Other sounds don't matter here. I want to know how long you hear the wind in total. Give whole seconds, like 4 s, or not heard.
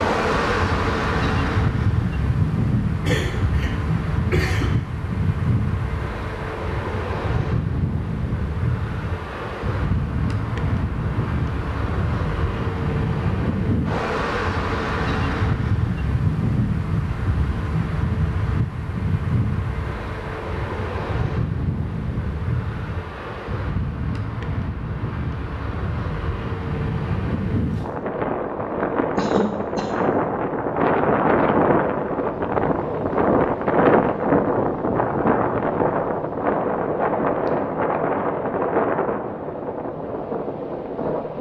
41 s.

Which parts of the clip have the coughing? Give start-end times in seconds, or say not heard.
3.0-4.7, 29.1-29.9.